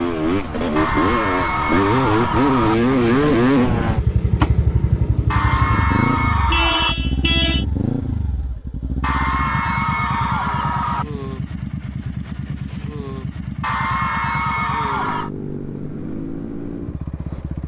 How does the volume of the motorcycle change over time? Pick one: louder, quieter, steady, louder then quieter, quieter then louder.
quieter.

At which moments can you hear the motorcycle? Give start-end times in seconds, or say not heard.
0.0-17.6.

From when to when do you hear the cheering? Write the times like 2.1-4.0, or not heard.
0.8-2.8, 5.3-7.0, 9.0-11.1, 13.6-15.3.